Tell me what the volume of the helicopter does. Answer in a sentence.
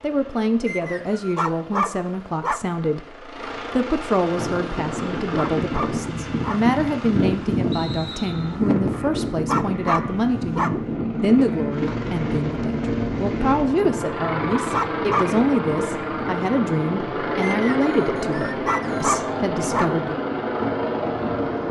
The volume of the helicopter goes up.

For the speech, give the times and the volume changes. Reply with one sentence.
The speech can be heard from 0.0 to 20.2 s, at a steady volume.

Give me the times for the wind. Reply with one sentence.
The wind can be heard from 4.3 to 21.6 s.